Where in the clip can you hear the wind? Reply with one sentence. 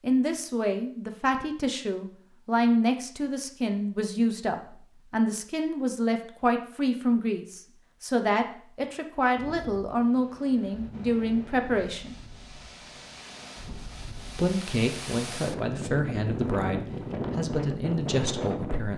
You can hear the wind from 9.3 to 18.9 s.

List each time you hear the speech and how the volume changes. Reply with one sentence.
The speech can be heard from 0.0 to 12.2 s, at a steady volume; and from 14.3 to 18.9 s, at a steady volume.